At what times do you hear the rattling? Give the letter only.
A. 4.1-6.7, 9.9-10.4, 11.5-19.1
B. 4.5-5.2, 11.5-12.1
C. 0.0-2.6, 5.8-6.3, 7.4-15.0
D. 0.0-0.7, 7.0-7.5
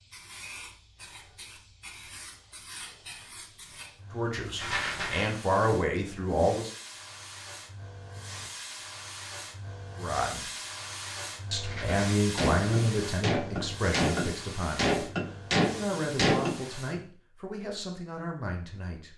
B.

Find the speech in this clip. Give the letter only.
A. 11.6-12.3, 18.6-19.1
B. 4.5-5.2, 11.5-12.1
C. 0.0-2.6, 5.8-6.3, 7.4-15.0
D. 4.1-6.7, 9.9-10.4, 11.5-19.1
D.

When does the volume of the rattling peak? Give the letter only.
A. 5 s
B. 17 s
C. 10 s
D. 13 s
A.